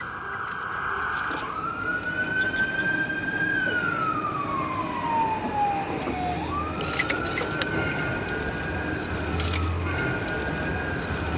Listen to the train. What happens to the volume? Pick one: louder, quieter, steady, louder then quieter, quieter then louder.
steady.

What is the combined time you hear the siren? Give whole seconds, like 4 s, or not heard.
11 s.